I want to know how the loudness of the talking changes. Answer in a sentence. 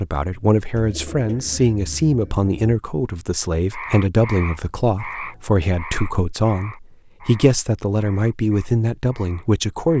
The volume of the talking stays about the same.